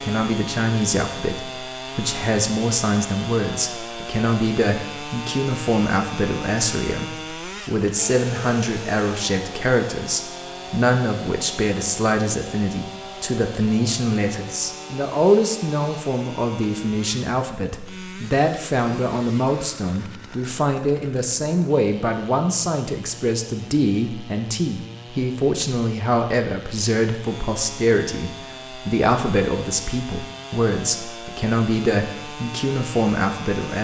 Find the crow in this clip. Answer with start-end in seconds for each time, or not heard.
not heard.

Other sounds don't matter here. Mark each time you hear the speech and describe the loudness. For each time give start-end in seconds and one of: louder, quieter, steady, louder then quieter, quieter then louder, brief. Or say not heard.
0.0-33.7 steady.